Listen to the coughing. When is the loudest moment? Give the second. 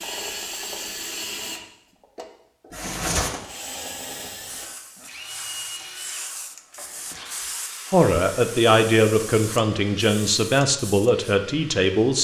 3 s.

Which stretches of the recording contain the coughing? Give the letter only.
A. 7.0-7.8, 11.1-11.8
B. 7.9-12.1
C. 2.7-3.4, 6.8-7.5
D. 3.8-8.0
C.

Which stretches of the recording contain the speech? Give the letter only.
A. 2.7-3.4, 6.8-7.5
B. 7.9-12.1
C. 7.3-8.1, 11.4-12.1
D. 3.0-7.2
B.